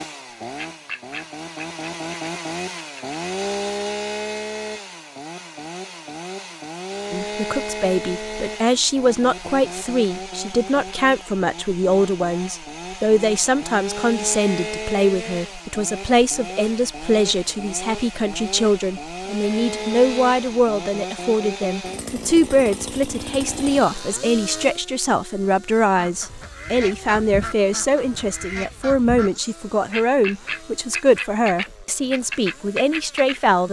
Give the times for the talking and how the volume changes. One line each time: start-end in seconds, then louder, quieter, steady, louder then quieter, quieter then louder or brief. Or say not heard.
7.1-33.6 steady.